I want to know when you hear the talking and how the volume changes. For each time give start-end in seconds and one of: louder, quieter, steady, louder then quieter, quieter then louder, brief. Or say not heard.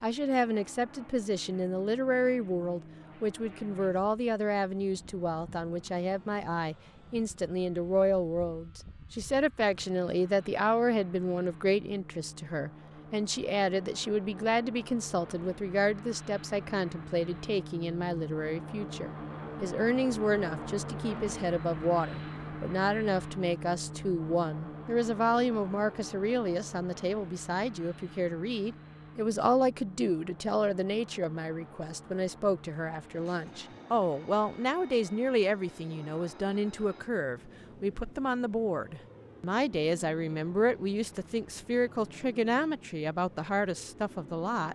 0.0-44.6 steady.